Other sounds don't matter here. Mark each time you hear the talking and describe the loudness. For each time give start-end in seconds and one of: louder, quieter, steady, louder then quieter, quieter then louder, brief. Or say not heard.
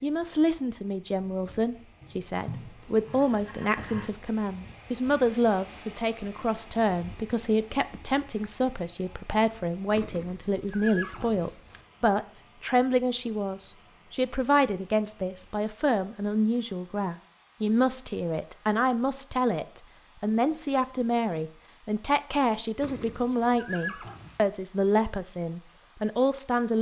0.0-26.7 steady.